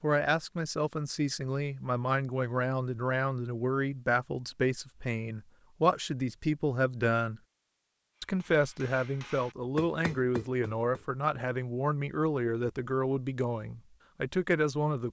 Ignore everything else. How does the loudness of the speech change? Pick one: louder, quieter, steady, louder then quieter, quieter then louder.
steady.